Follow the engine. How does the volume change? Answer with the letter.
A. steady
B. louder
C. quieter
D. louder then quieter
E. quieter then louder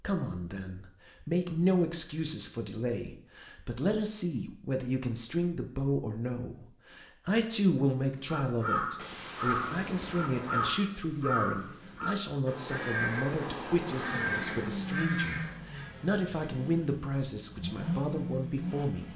E.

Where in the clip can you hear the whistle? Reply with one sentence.
You can't hear the whistle here.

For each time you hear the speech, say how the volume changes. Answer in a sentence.
You can hear the speech from 0.0 to 19.1 s, at a steady volume.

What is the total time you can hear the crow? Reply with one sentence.
The crow can be heard for 8 seconds in total.